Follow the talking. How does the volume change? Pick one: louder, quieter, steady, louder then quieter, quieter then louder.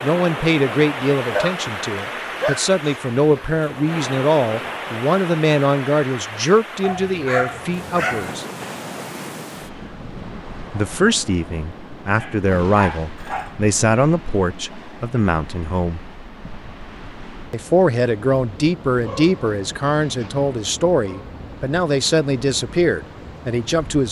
steady.